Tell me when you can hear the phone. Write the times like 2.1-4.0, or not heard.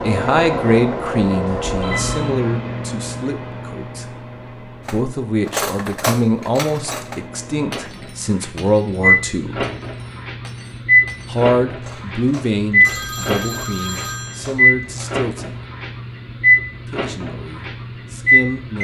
1.6-2.4, 12.8-14.6.